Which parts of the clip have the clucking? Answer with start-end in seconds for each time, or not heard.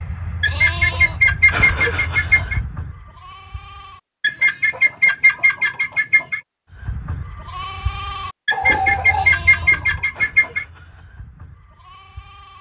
0.4-2.6, 4.2-6.4, 8.4-10.7.